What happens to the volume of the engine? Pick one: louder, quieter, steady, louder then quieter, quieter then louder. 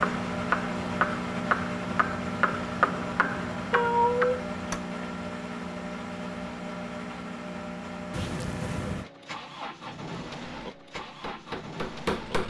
quieter.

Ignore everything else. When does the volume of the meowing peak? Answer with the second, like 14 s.
4 s.